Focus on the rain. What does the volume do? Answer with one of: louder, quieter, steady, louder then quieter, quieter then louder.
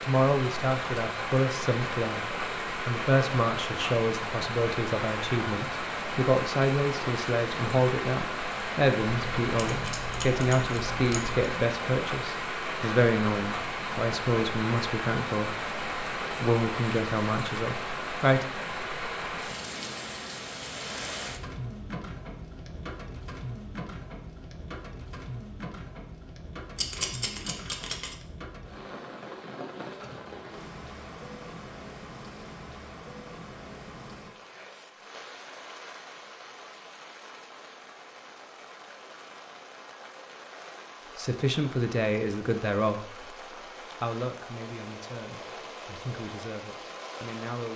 quieter.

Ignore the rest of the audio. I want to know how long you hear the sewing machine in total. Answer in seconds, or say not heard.
not heard.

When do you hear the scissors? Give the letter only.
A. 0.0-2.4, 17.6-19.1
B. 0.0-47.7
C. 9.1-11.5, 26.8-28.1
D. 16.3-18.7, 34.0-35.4
C.